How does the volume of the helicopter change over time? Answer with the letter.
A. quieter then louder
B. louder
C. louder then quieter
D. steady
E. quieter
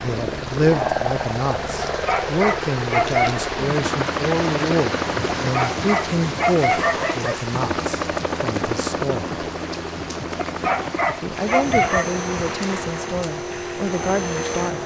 D.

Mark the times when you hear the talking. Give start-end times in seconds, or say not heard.
0.0-9.3, 11.2-14.8.